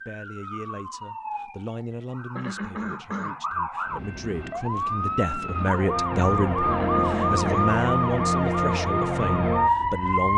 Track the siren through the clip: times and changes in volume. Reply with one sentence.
You can hear the siren from 0.0 to 10.3 s, getting louder.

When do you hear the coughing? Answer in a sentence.
You can hear the coughing from 2.4 to 3.4 s and from 6.7 to 7.8 s.